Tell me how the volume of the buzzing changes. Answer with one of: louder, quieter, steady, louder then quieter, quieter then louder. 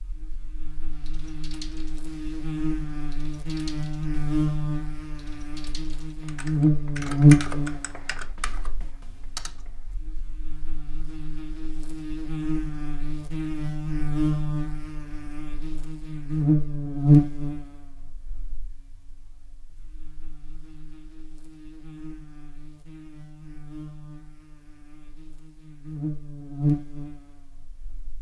louder then quieter.